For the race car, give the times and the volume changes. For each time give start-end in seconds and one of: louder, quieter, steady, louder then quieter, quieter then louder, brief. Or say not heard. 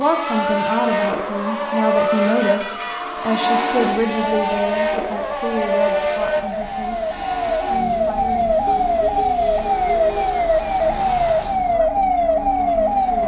0.0-13.2 quieter.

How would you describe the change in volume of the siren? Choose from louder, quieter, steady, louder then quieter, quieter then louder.
louder.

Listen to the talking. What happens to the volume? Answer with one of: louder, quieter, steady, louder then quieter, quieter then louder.
quieter.